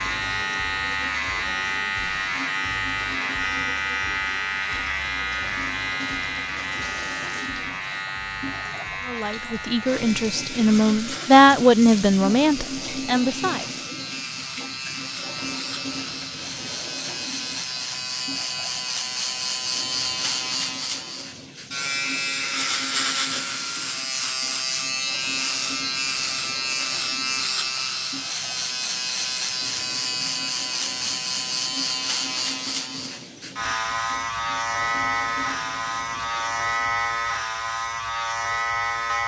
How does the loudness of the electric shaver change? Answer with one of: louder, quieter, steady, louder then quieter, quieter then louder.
quieter then louder.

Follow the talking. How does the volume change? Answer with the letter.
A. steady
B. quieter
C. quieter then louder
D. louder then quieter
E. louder
D.